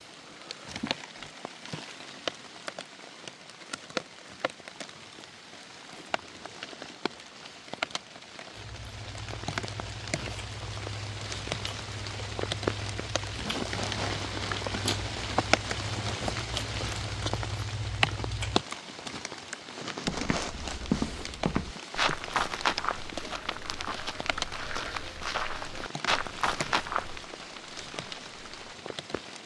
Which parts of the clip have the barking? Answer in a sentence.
The barking can't be heard in this clip.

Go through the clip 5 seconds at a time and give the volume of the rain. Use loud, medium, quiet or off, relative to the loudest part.
medium, medium, loud, loud, medium, medium.